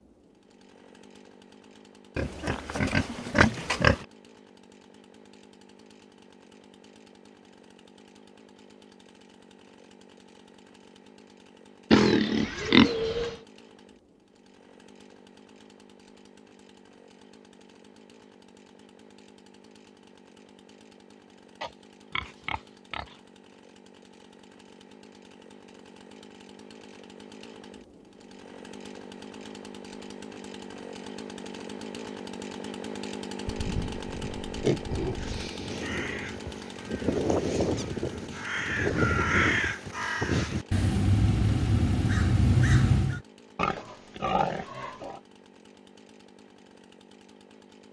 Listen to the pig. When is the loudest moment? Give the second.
13 s.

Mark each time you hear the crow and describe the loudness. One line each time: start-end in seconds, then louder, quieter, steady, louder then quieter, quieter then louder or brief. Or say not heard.
35.1-43.2 louder.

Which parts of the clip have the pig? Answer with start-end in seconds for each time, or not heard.
2.1-4.0, 11.9-13.3, 21.6-23.1, 33.5-35.5, 43.5-45.2.